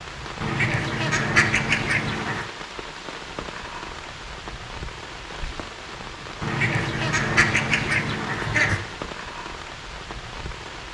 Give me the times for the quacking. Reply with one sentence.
You can hear the quacking from 0.4 to 2.5 s and from 6.4 to 8.8 s.